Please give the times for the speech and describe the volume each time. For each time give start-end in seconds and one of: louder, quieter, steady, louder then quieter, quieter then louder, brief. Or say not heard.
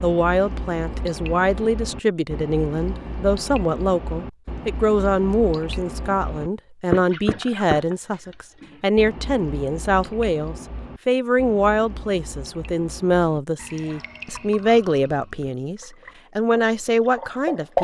0.0-17.7 steady.